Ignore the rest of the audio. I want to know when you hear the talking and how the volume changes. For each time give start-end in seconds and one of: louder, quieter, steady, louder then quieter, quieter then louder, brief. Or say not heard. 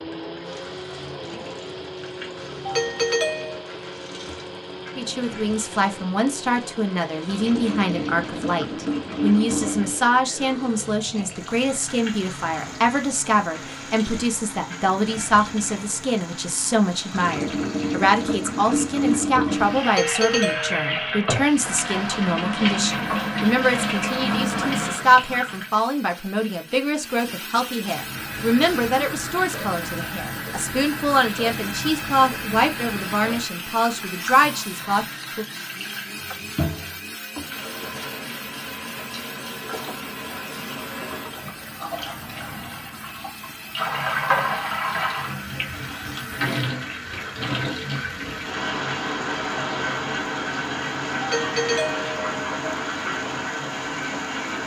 5.0-35.5 steady.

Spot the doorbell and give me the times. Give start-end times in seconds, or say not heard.
2.6-3.6, 19.9-21.1, 51.2-52.3.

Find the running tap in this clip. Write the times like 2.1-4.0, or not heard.
0.0-25.9, 27.9-54.6.